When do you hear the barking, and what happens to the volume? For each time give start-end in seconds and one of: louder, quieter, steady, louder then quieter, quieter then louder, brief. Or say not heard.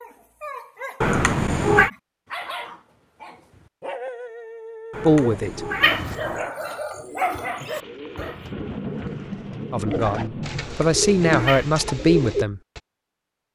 0.0-8.4 louder.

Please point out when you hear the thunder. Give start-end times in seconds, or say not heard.
7.5-10.8.